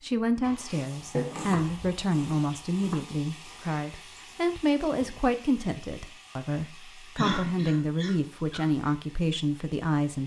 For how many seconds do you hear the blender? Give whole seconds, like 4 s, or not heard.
not heard.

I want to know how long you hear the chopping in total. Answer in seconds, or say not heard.
2 s.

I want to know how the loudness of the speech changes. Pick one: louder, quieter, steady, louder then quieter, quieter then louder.
steady.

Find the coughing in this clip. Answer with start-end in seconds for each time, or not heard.
7.2-8.7.